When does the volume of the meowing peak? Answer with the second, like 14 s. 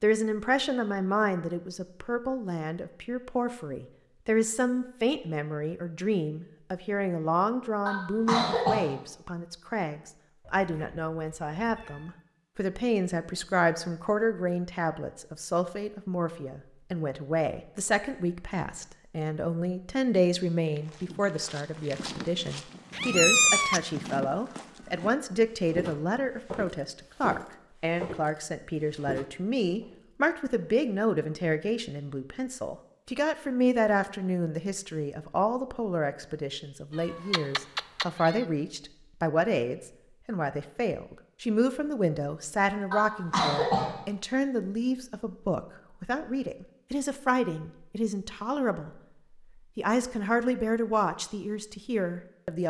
23 s.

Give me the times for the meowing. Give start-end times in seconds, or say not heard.
10.4-12.2, 22.9-23.8, 37.0-38.5.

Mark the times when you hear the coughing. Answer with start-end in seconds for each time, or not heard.
7.8-8.8, 42.9-43.9.